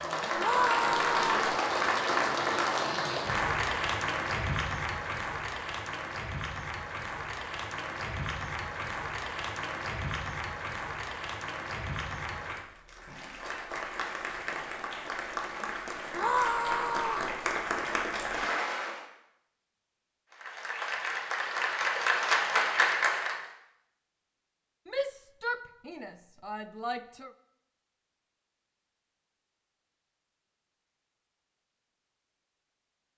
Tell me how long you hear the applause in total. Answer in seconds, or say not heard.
22 s.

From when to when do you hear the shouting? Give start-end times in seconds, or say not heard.
0.3-1.6, 16.1-17.3, 24.9-27.3.